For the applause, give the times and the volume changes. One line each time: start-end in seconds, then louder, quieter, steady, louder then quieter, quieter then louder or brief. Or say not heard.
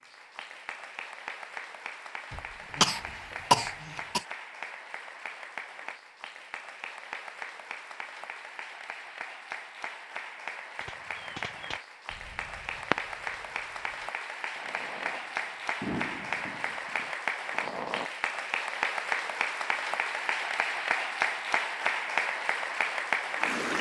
0.0-23.7 louder.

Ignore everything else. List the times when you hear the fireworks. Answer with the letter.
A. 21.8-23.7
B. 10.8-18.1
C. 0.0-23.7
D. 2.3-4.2
B.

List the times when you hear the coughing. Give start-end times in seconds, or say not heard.
2.3-4.2.